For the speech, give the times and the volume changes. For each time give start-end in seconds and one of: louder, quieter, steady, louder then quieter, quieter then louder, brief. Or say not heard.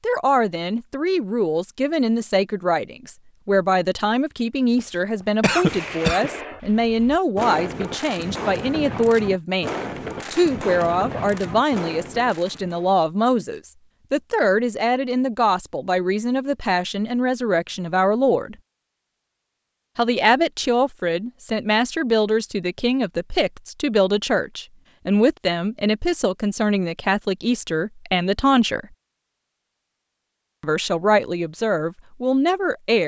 0.0-18.6 steady
19.9-28.9 steady
30.6-33.0 brief.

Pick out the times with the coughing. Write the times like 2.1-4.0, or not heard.
5.4-6.3.